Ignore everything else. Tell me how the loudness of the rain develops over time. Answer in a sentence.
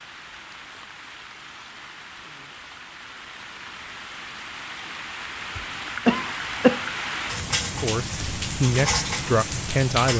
The volume of the rain goes up.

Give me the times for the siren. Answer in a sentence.
The siren can't be heard in this clip.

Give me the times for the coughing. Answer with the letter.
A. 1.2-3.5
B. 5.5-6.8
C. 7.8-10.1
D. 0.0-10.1
B.